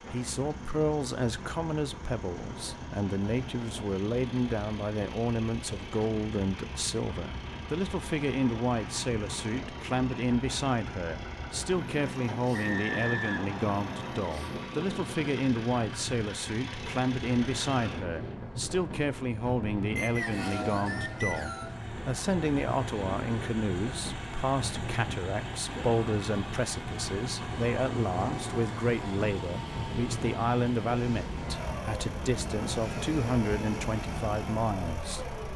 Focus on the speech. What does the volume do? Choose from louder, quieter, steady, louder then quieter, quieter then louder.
steady.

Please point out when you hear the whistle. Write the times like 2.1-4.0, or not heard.
12.5-14.2, 19.9-21.8.